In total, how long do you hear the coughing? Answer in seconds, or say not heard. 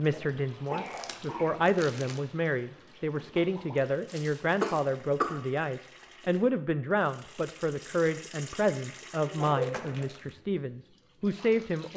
3 s.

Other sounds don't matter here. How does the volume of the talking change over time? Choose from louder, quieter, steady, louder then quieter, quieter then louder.
steady.